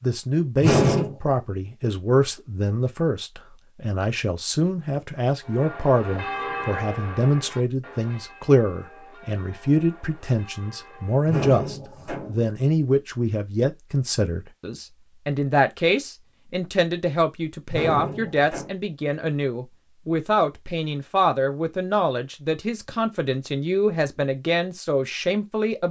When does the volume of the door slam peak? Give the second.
1 s.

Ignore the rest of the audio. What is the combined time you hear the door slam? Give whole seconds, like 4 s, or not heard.
3 s.